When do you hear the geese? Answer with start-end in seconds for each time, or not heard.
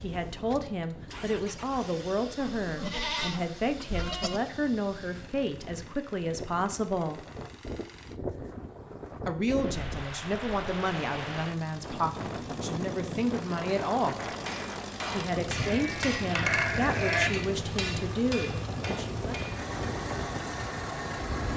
not heard.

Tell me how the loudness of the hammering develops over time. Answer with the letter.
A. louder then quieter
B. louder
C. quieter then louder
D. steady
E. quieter
A.